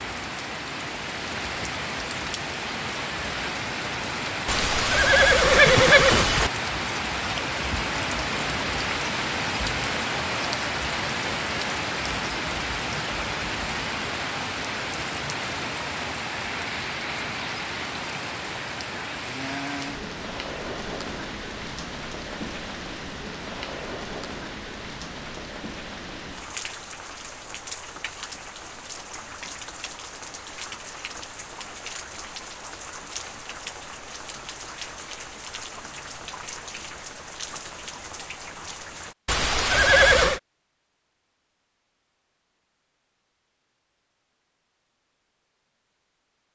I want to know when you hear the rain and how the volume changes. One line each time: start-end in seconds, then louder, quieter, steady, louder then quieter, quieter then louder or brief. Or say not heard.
0.0-39.1 quieter.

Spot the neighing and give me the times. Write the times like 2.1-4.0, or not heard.
4.5-6.5, 39.2-40.4.